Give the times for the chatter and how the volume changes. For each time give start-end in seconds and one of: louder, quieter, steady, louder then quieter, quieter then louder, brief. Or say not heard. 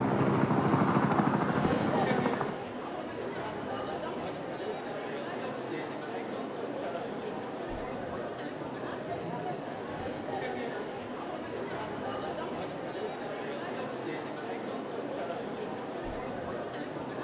0.0-17.1 steady.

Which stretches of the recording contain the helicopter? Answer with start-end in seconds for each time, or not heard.
0.0-2.5.